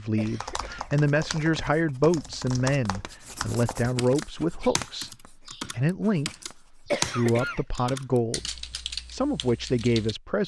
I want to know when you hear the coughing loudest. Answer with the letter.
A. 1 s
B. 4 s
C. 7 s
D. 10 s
C.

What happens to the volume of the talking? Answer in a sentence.
The volume of the talking stays about the same.